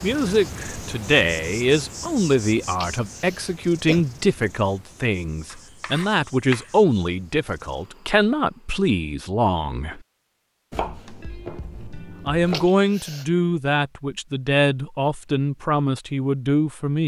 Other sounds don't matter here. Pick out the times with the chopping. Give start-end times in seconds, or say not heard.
5.5-6.8, 10.7-12.7.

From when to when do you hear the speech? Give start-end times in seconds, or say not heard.
0.0-10.0, 12.2-17.0.